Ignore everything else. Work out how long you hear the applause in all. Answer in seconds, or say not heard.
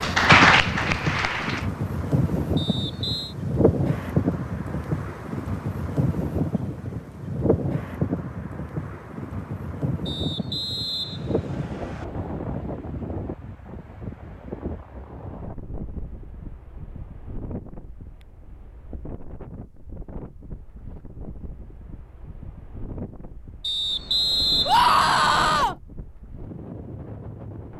2 s.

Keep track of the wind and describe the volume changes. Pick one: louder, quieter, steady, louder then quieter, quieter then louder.
quieter.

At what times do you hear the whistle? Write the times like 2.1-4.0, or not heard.
2.5-3.4, 10.1-12.1, 23.6-25.6.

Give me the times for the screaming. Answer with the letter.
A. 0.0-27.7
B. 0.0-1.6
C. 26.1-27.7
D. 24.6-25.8
D.